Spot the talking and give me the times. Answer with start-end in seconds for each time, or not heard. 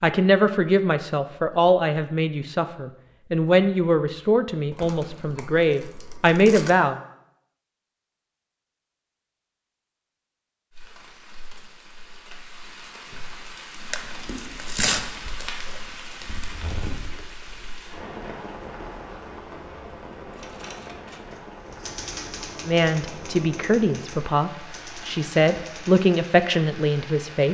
0.0-7.0, 22.6-27.5.